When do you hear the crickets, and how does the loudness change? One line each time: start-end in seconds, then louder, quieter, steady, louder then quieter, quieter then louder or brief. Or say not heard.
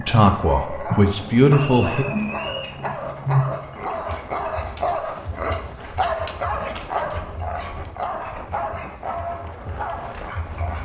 0.0-10.8 quieter.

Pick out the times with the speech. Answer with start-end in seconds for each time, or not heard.
0.0-2.0.